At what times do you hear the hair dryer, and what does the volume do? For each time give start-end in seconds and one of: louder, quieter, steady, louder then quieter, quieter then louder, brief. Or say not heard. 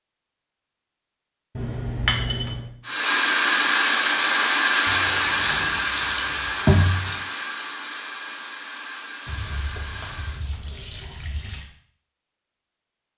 2.9-10.5 quieter.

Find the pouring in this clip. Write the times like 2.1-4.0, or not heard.
1.6-2.7, 4.8-7.2, 9.2-11.7.